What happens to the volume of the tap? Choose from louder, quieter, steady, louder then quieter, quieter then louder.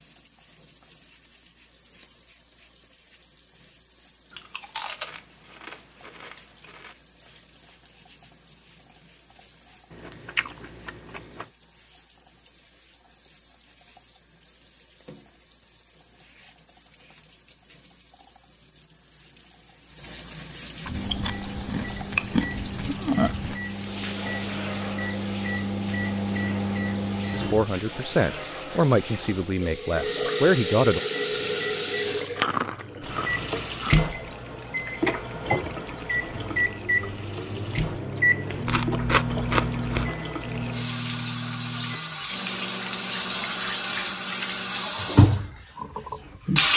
louder.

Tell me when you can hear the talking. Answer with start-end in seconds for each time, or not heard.
27.3-31.0.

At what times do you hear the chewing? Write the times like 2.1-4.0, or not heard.
4.3-6.9, 9.9-11.4, 20.9-23.6, 32.1-34.1, 38.6-40.1.